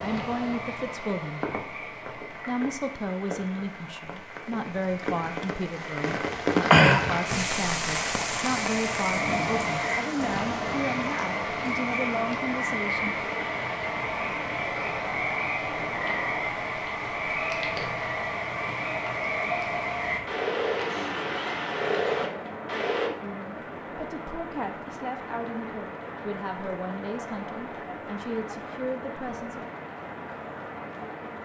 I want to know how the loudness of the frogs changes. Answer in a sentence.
The loudness of the frogs goes up.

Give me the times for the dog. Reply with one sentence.
The dog can't be heard in this clip.